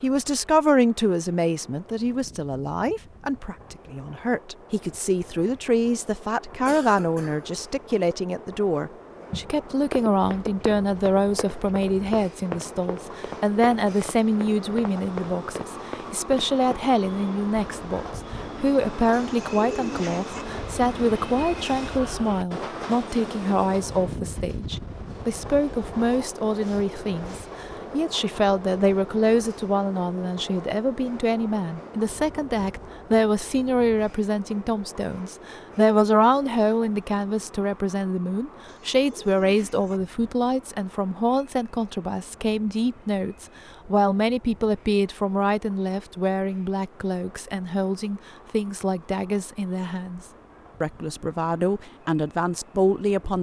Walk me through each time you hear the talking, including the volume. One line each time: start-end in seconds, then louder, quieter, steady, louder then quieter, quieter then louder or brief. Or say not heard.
0.0-50.2 steady
50.8-53.3 brief.